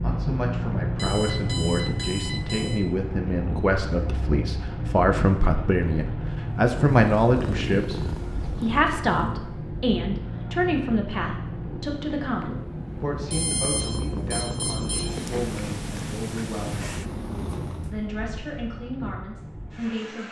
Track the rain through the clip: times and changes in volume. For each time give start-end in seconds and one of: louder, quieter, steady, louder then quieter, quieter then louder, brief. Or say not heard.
0.0-20.2 quieter.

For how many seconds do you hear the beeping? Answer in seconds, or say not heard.
4 s.